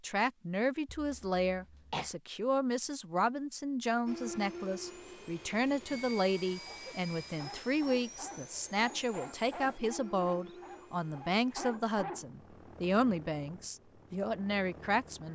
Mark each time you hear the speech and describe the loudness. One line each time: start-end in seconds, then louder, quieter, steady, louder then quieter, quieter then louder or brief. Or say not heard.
0.0-15.3 steady.